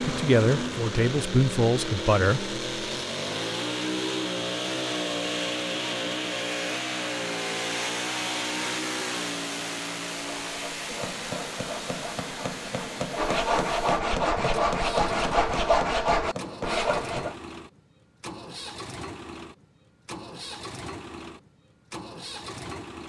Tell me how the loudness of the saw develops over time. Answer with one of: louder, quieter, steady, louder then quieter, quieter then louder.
louder.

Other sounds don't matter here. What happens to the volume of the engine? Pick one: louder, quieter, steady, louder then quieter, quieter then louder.
quieter.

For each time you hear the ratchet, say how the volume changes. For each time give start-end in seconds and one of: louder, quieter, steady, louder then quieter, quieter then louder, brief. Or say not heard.
not heard.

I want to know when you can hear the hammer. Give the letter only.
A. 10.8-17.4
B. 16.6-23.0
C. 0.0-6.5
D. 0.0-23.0
A.